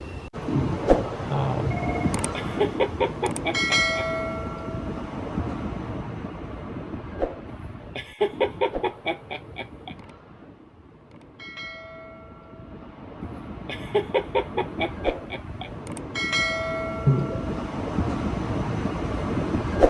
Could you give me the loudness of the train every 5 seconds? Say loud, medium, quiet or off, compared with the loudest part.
loud, medium, quiet, loud.